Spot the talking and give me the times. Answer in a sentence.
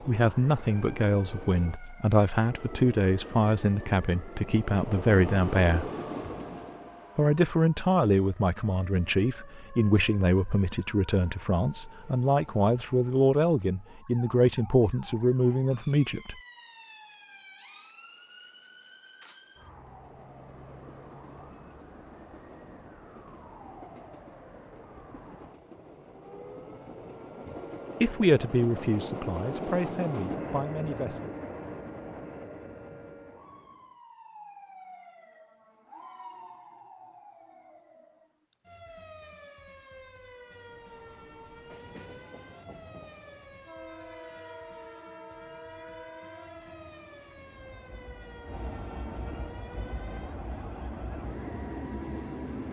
The talking can be heard from 0.1 to 5.9 s, from 7.2 to 16.4 s and from 28.0 to 31.4 s.